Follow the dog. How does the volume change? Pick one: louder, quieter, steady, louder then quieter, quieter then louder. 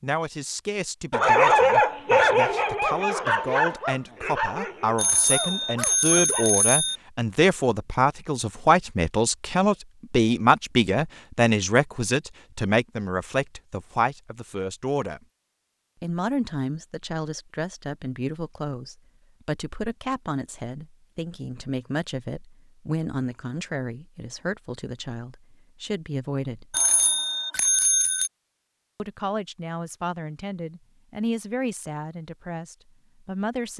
quieter.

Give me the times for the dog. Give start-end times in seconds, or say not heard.
1.1-6.5.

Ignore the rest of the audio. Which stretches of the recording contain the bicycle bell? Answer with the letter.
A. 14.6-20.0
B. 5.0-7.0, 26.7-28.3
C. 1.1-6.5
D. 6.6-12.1
B.